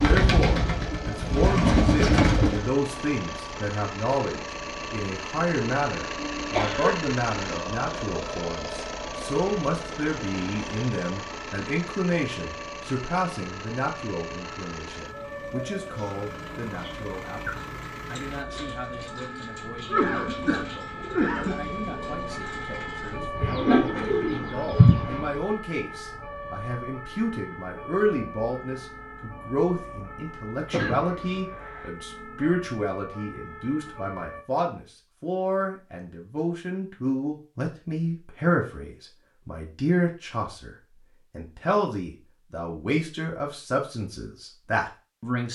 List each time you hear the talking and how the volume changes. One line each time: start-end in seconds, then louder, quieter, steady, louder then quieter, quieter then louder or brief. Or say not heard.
0.0-45.4 quieter then louder.